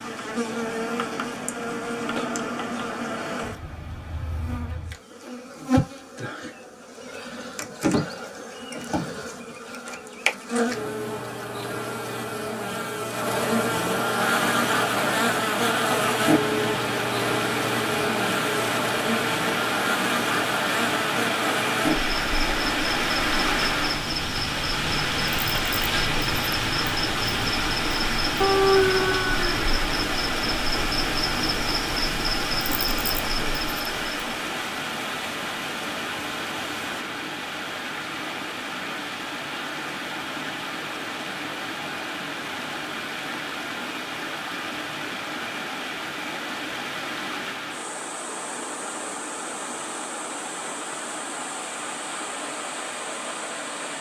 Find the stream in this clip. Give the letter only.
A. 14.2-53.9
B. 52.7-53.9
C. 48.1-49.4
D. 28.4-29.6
A.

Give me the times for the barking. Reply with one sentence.
You can hear the barking from 28.4 to 29.6 s.